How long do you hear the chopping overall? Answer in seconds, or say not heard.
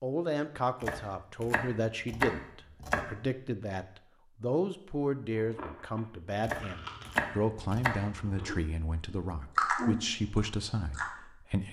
4 s.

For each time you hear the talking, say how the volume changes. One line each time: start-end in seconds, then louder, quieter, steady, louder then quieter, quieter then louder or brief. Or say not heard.
0.0-11.6 steady.